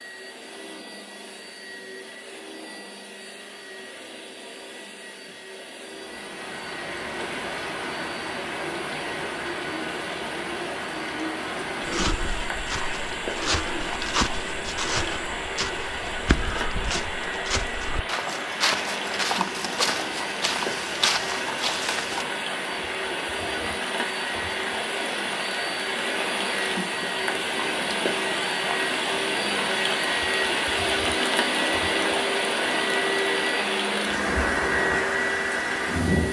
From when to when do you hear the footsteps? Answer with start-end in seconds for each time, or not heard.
11.8-22.2.